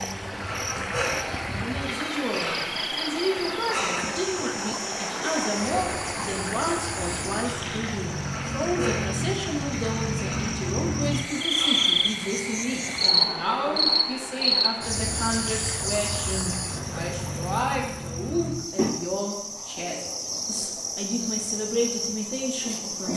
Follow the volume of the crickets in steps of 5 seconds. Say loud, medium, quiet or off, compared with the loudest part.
medium, medium, loud, medium, medium.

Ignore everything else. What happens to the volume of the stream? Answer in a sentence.
The volume of the stream goes down.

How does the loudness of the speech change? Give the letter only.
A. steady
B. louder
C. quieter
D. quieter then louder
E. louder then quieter
A.